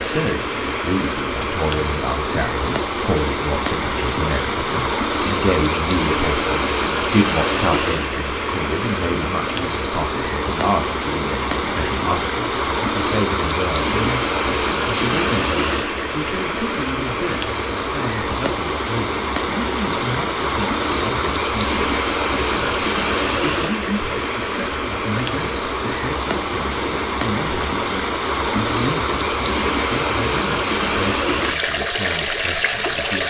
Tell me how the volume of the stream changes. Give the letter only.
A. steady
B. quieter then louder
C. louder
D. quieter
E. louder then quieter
A.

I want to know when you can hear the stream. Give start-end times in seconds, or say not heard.
0.0-33.2.